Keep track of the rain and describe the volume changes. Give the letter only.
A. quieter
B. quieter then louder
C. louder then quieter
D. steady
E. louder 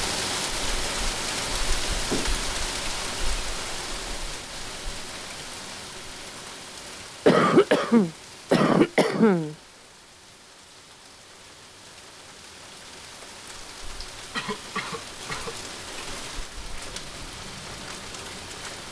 B.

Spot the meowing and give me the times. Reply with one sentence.
The meowing can't be heard in this clip.